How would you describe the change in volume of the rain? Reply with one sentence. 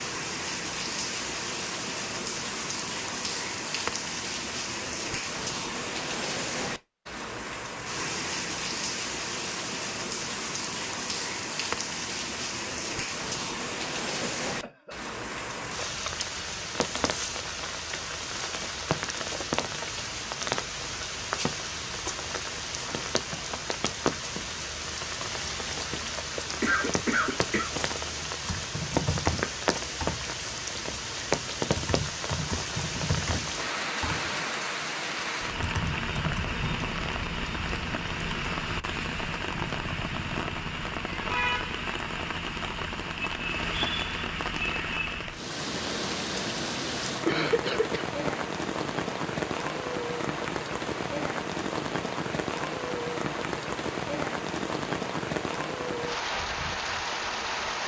The volume of the rain stays about the same.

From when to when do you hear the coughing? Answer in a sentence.
The coughing can be heard from 14.4 to 14.9 s, from 26.6 to 27.7 s and from 47.2 to 48.5 s.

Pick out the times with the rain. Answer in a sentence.
You can hear the rain from 0.0 to 57.8 s.